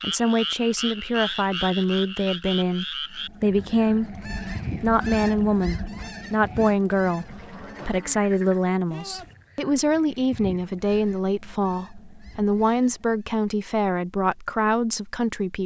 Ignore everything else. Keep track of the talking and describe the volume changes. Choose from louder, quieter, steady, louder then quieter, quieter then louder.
steady.